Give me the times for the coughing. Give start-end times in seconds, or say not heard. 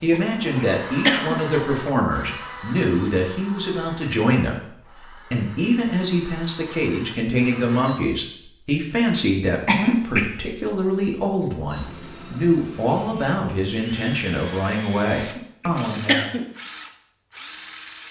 0.1-1.4, 9.7-10.3, 15.2-16.4.